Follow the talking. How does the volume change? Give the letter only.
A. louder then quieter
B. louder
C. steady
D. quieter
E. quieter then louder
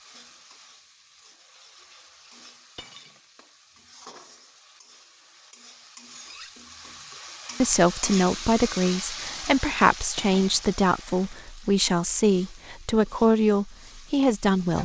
C.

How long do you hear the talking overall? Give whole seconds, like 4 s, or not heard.
7 s.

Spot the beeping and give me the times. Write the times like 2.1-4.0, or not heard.
not heard.